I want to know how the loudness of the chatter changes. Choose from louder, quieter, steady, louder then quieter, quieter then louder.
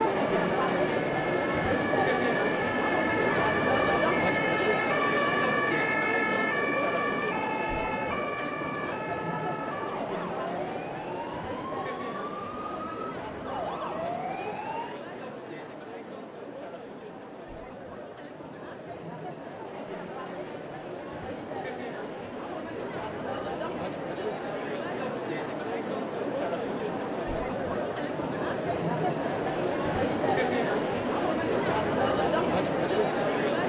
quieter then louder.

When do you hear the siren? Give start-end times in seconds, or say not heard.
0.0-15.0.